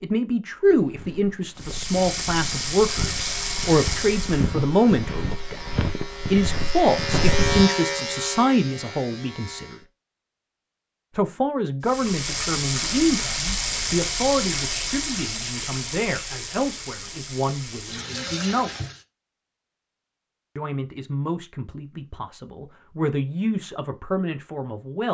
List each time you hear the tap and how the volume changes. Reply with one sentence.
The tap can be heard briefly from 1.6 to 4.5 s; and from 11.8 to 19.1 s, getting quieter.